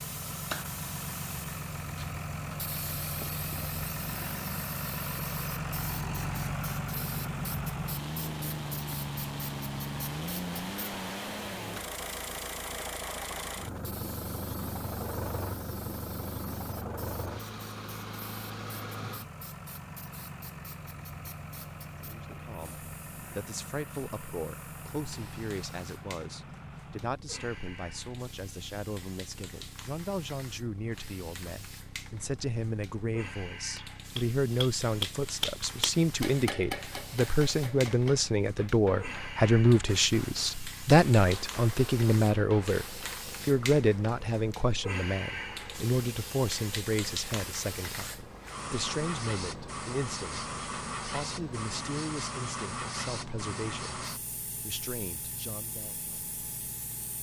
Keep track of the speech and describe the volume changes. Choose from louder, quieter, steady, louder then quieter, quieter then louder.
louder then quieter.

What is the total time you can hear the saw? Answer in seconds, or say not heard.
not heard.